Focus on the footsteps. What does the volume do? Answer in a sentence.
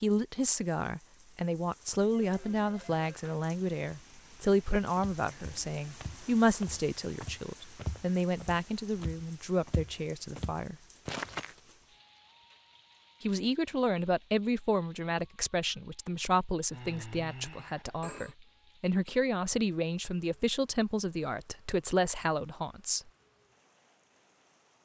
The loudness of the footsteps goes up.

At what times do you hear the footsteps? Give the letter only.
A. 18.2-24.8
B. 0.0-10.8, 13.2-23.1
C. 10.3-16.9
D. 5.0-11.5
D.